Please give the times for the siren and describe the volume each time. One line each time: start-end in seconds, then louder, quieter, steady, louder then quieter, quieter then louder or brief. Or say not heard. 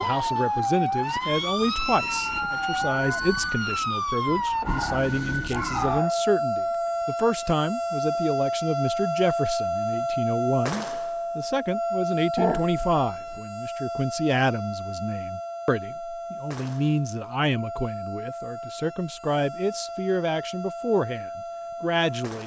0.0-22.4 quieter.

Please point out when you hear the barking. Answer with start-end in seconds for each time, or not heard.
4.6-6.2, 12.3-13.4.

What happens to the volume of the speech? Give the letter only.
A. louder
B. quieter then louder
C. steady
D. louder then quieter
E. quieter
C.